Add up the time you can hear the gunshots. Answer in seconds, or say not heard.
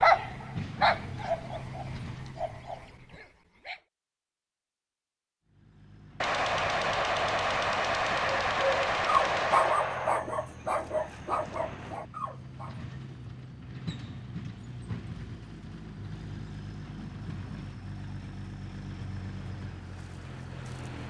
4 s.